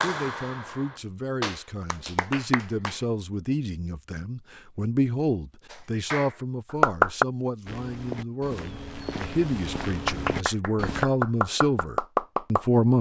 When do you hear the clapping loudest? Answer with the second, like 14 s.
7 s.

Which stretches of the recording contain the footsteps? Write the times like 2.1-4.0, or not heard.
7.7-11.1.